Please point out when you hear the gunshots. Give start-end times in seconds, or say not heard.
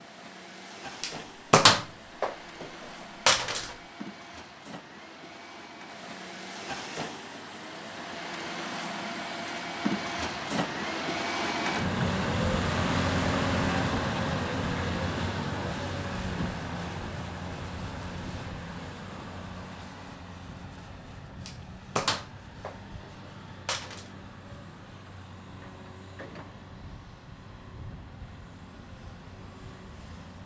1.0-2.6, 3.2-3.8, 21.4-24.1.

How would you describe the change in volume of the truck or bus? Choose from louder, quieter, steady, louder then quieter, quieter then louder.
louder then quieter.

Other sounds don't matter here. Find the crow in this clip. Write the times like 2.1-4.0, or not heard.
not heard.